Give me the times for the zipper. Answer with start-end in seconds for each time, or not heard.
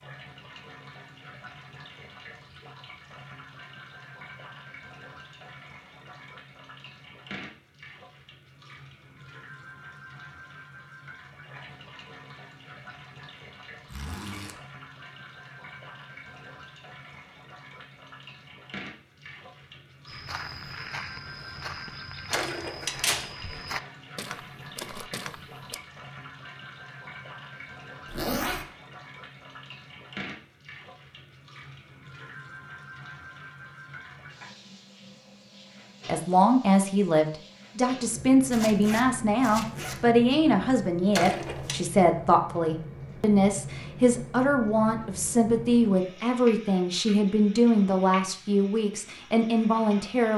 13.8-14.6, 28.1-28.7, 38.5-40.0.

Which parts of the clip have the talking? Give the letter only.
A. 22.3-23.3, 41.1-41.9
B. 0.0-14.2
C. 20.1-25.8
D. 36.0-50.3
D.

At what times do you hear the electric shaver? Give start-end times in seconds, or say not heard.
not heard.